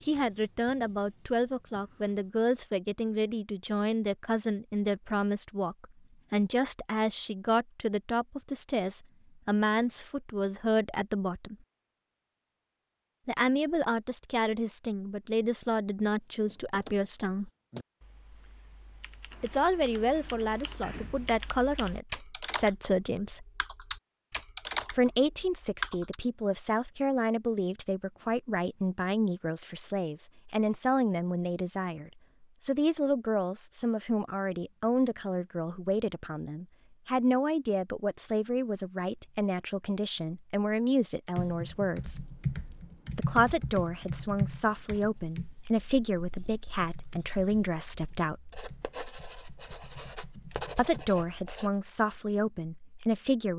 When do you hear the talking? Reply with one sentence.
You can hear the talking from 0.0 to 11.6 s, from 13.2 to 17.5 s, from 19.4 to 23.4 s, from 24.9 to 42.2 s, from 43.1 to 48.6 s and from 50.8 to 53.5 s.